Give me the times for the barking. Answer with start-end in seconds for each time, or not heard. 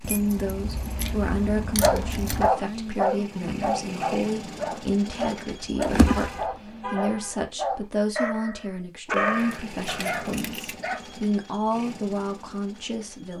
1.8-11.0.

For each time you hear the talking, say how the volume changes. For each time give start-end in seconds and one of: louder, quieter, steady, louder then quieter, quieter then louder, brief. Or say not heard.
0.0-13.3 steady.